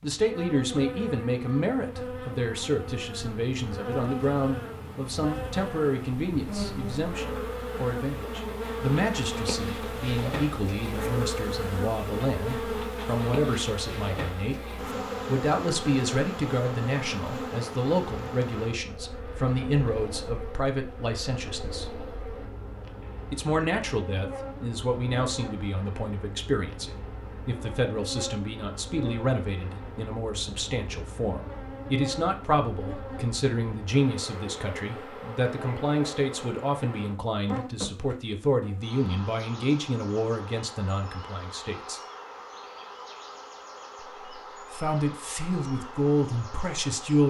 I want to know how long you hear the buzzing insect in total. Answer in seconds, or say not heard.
47 s.